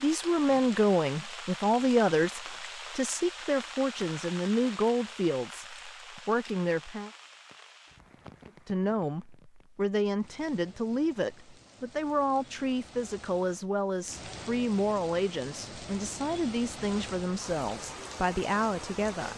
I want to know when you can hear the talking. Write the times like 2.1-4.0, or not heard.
0.0-7.1, 8.7-19.3.